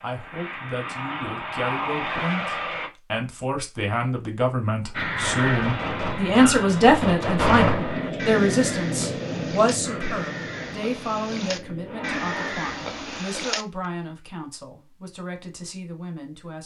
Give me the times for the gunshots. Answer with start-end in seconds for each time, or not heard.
5.2-8.0.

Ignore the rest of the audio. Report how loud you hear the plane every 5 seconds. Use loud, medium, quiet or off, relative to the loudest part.
loud, loud, medium, off.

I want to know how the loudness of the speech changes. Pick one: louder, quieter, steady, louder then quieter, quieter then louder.
louder then quieter.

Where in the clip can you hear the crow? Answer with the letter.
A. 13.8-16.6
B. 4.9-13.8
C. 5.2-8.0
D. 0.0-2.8
B.